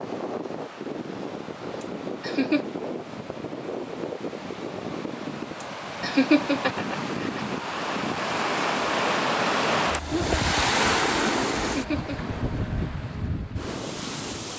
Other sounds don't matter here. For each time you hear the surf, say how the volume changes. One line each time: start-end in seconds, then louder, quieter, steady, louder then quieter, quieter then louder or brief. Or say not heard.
0.0-14.5 louder then quieter.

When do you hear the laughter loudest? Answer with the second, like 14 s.
6 s.